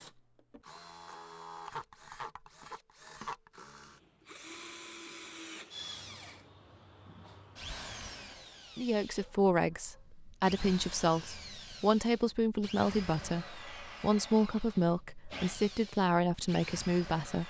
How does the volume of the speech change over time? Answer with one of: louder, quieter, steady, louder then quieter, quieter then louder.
steady.